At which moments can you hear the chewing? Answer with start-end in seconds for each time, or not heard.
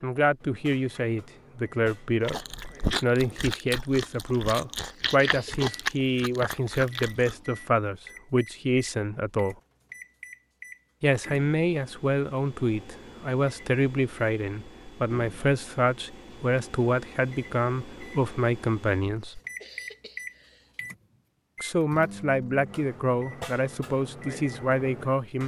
2.2-7.3.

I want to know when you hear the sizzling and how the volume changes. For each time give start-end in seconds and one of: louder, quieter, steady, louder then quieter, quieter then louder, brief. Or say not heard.
not heard.